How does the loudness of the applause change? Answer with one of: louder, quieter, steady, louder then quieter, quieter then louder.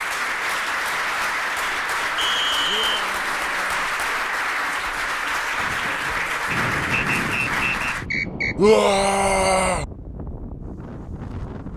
steady.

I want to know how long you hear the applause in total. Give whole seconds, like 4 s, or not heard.
8 s.